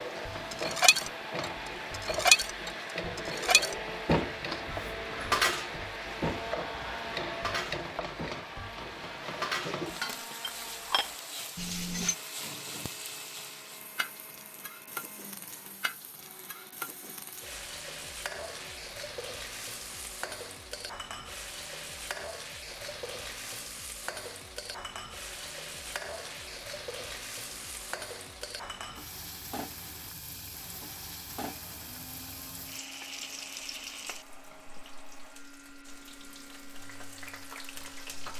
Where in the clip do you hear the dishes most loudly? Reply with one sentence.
The volume of the dishes peaks at 2 seconds.